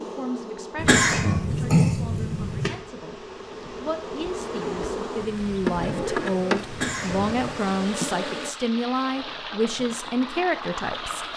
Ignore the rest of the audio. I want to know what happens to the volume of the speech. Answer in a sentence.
The loudness of the speech goes up.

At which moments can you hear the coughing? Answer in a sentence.
The coughing can be heard from 0.8 to 2.7 s and from 6.7 to 7.6 s.